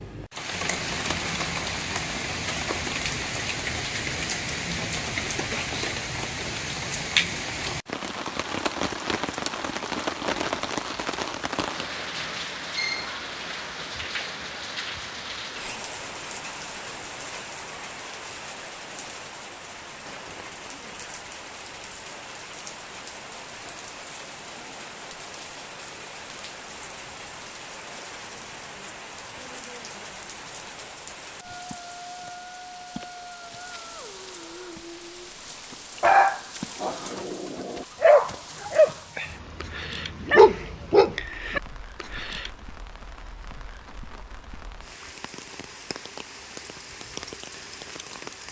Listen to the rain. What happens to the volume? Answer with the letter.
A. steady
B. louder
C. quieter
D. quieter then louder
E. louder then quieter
C.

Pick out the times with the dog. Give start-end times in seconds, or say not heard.
36.0-42.5.